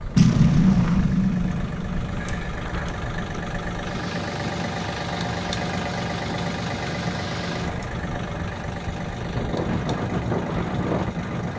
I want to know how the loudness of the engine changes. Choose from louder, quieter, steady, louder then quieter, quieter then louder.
louder then quieter.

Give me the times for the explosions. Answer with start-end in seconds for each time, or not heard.
0.1-2.4.